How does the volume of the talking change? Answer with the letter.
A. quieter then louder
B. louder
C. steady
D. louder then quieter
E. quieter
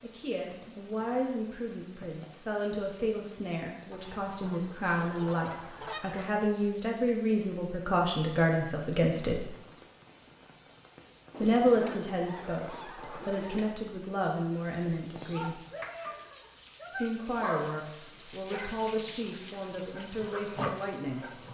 D.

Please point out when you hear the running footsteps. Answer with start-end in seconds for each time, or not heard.
not heard.